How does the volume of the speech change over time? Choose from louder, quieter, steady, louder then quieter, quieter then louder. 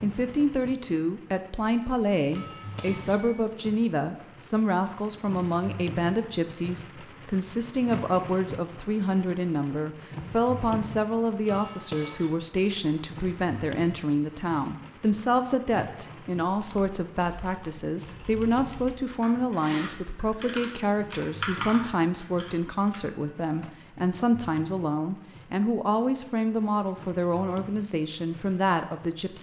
steady.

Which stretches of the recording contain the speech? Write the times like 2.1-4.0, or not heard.
0.0-29.3.